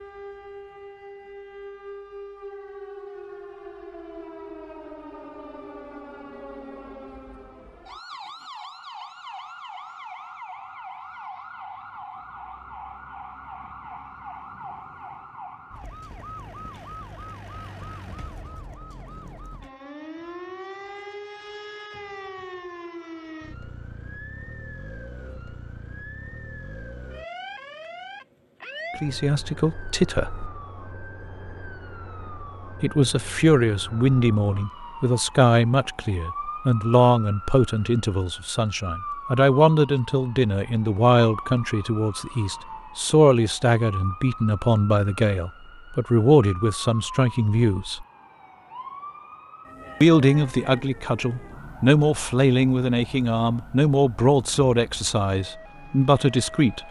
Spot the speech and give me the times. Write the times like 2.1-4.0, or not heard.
29.0-30.5, 32.8-48.0, 50.0-56.8.